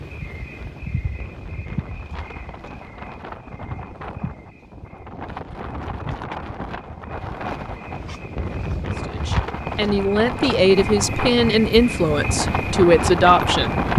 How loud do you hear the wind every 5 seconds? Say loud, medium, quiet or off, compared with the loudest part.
quiet, medium, loud.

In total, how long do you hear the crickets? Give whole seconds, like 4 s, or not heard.
14 s.